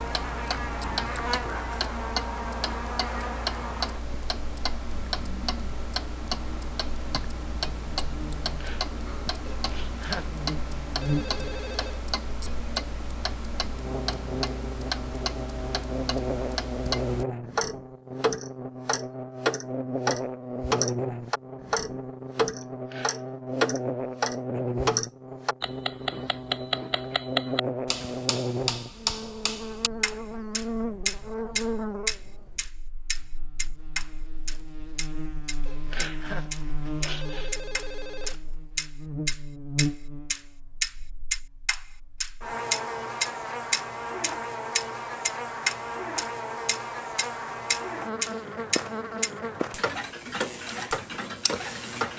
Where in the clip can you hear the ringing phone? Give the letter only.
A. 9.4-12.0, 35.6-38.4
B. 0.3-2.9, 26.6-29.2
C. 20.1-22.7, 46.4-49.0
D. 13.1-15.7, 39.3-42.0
A.